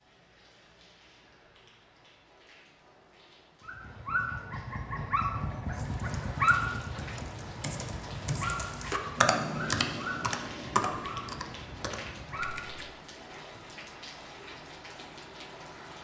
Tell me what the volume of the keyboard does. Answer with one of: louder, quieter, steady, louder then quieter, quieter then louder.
louder then quieter.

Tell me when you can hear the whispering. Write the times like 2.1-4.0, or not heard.
not heard.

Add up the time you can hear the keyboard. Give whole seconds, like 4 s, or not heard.
7 s.